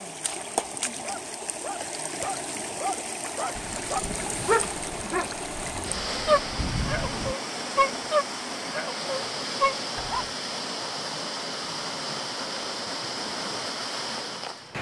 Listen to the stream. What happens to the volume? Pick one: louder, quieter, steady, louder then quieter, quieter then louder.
steady.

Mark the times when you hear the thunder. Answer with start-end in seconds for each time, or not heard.
3.5-7.3.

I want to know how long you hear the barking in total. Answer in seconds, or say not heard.
9 s.